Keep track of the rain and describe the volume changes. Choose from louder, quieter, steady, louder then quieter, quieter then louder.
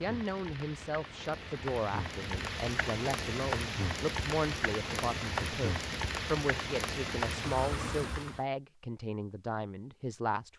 louder.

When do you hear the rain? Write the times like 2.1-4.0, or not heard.
0.0-8.4.